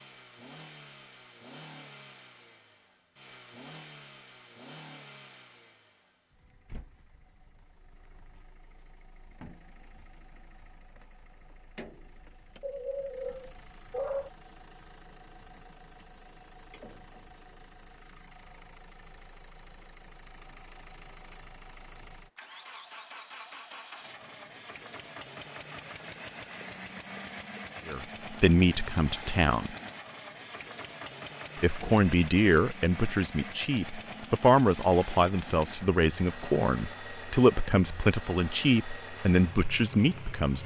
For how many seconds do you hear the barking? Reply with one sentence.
You can hear the barking for 2 seconds altogether.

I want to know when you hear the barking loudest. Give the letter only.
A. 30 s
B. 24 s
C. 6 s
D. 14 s
D.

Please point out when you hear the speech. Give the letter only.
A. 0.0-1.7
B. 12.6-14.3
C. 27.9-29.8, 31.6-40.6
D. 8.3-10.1
C.